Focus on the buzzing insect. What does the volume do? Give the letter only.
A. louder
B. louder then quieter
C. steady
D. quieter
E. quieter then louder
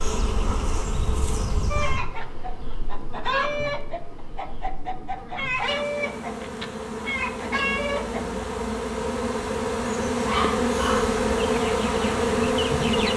E.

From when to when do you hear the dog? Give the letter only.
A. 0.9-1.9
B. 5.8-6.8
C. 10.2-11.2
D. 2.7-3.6
C.